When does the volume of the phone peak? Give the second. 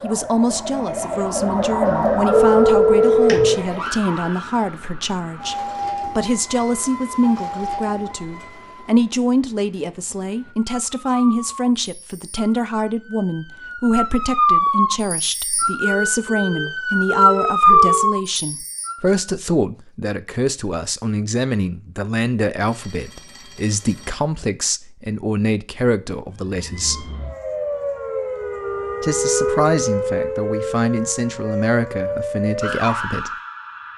3 s.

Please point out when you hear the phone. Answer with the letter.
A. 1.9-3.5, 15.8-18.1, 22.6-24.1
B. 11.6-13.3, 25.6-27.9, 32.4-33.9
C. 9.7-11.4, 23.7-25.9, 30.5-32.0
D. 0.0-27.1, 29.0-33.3
A.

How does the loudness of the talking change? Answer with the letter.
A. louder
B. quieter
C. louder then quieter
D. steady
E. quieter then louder
D.